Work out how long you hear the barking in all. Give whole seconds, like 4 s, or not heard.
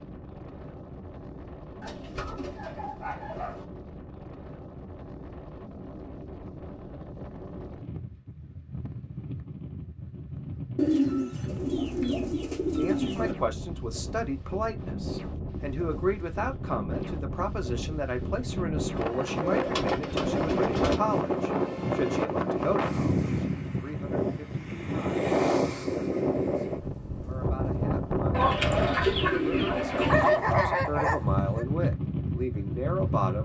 2 s.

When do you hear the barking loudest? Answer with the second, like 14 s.
30 s.